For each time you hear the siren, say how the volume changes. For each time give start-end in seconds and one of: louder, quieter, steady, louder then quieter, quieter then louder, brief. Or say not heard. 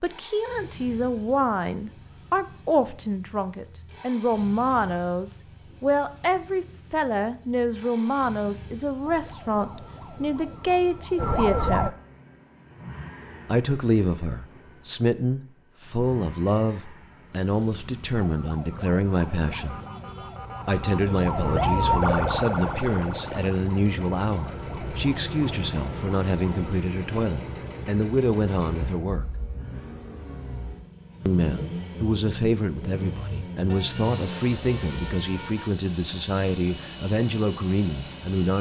9.0-11.9 brief
18.1-26.8 louder then quieter.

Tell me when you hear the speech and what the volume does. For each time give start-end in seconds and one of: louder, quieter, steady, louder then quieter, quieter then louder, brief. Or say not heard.
0.0-11.9 steady
13.4-19.8 steady
20.6-29.2 steady
31.2-38.5 steady.